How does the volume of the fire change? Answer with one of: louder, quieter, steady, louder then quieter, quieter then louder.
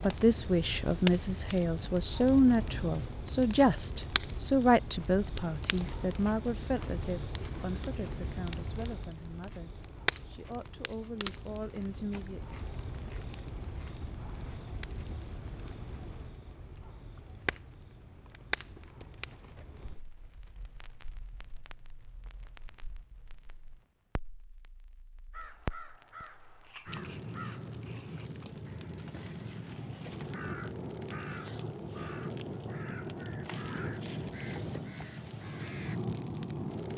quieter then louder.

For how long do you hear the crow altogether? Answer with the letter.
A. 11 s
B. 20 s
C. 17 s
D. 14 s
A.